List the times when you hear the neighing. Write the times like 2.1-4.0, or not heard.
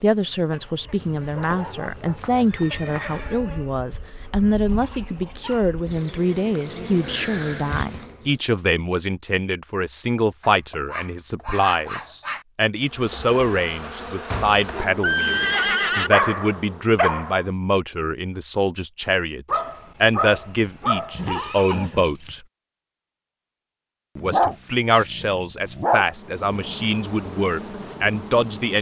1.0-3.4, 14.3-16.1, 21.1-22.4.